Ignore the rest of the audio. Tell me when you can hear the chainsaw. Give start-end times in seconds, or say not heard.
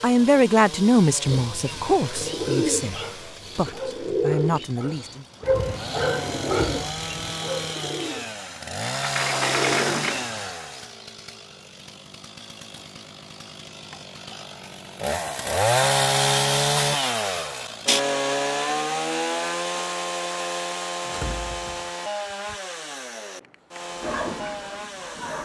0.0-25.3.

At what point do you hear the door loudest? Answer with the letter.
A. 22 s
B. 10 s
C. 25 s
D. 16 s
B.